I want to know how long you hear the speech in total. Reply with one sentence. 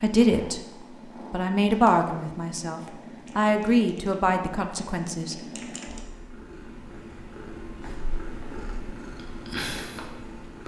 You can hear the speech for 5 seconds altogether.